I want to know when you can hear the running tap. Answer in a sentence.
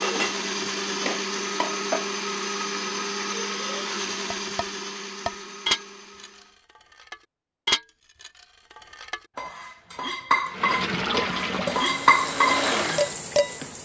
You can hear the running tap from 10.5 to 13.8 s.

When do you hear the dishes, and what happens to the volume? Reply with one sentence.
The dishes can be heard briefly from 0.0 to 2.1 s; and from 4.3 to 13.5 s, getting quieter then louder.